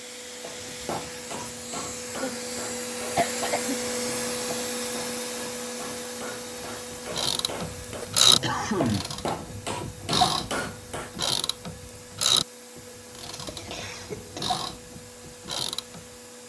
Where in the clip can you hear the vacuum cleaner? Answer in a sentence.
You can hear the vacuum cleaner from 0.0 to 16.4 s.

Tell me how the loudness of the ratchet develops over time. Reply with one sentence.
The loudness of the ratchet goes down.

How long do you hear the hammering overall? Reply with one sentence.
You can hear the hammering for 11 seconds altogether.